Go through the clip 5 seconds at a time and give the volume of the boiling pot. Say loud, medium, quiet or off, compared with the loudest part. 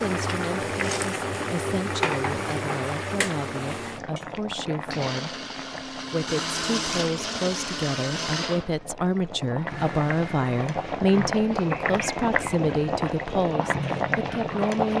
loud, medium, loud.